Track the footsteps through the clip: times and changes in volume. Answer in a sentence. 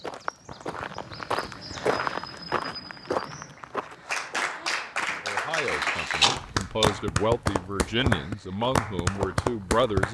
You can hear the footsteps from 0.0 to 10.1 s, getting quieter.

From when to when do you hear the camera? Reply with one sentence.
The camera can be heard from 5.5 to 7.0 s.